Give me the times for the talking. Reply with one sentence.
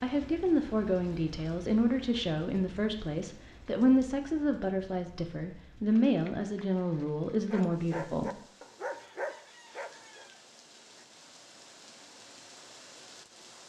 The talking can be heard from 0.0 to 8.4 s.